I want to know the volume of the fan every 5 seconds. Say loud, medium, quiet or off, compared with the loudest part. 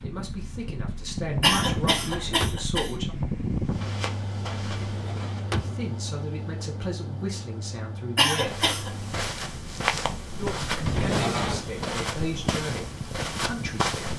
loud, medium, medium.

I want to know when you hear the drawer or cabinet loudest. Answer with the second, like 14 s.
11 s.